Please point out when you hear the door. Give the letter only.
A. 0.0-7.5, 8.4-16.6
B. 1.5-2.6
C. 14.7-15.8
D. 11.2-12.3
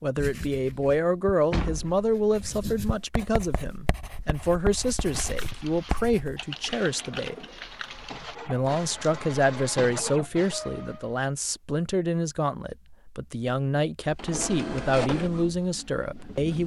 B.